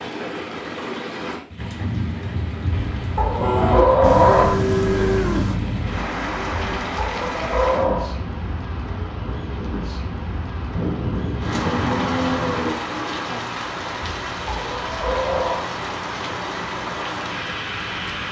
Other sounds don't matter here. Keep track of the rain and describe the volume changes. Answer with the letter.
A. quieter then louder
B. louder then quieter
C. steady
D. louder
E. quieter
C.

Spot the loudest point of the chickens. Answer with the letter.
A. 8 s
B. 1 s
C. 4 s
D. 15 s
C.